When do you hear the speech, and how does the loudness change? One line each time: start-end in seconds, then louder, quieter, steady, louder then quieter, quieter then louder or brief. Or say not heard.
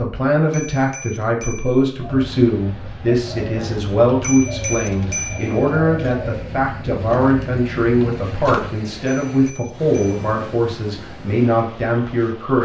0.0-12.6 steady.